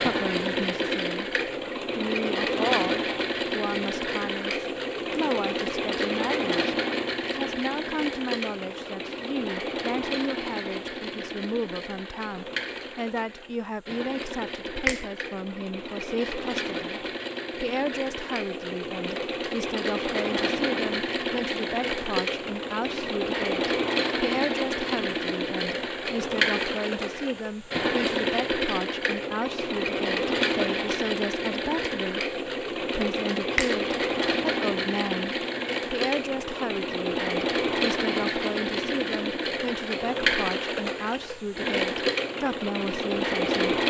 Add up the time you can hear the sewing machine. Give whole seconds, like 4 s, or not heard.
44 s.